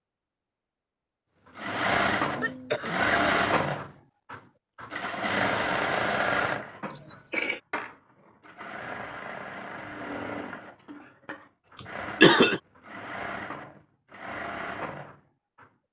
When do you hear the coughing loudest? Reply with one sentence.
The loudest moment of the coughing is at 12 seconds.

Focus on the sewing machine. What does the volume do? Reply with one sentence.
The volume of the sewing machine goes down.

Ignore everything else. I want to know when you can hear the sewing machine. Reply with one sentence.
The sewing machine can be heard from 1.6 to 15.7 s.